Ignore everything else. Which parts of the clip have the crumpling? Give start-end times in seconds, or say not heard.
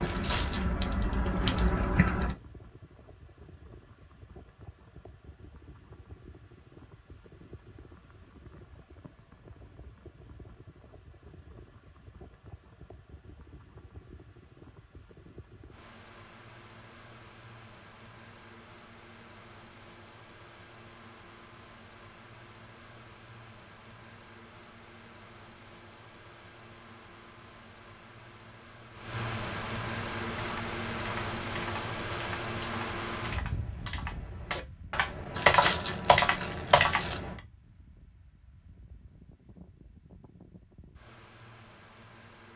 0.0-0.7, 35.4-37.2.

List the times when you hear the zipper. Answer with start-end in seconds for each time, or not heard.
not heard.